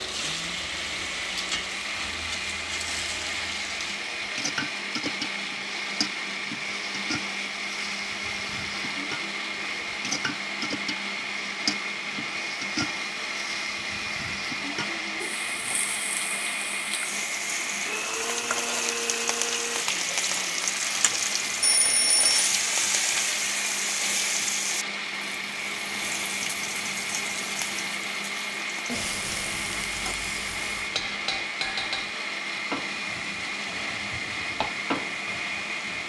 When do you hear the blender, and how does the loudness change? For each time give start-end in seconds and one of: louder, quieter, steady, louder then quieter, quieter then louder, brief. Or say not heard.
0.0-36.0 steady.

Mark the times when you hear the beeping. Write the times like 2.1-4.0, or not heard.
21.6-22.5.